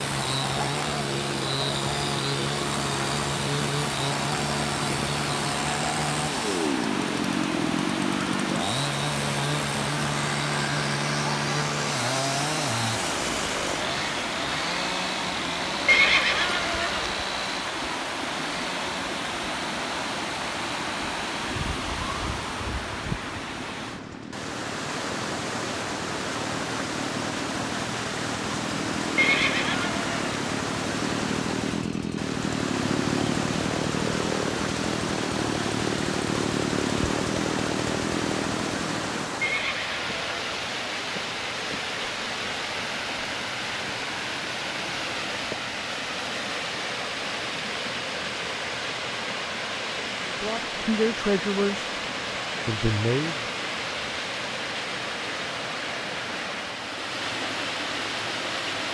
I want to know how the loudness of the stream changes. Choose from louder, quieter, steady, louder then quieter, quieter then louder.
steady.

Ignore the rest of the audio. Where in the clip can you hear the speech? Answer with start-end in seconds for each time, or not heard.
50.2-51.9, 52.6-53.5.